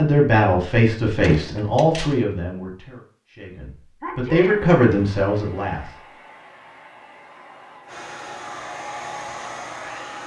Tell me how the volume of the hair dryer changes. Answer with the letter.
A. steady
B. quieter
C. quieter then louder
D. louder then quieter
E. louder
E.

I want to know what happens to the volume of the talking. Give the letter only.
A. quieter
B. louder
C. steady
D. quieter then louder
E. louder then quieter
D.